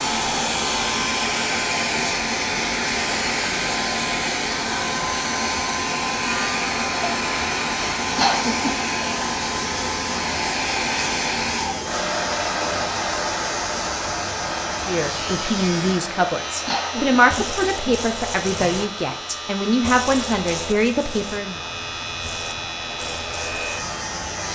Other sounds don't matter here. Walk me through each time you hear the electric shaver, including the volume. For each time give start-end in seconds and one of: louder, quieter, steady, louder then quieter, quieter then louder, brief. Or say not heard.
0.0-24.5 steady.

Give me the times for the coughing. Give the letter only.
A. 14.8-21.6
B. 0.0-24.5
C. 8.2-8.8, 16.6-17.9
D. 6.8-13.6
C.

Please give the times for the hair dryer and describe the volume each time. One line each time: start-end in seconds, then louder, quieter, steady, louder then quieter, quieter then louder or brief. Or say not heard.
0.0-24.5 quieter.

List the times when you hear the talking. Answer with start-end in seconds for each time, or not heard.
14.8-21.6.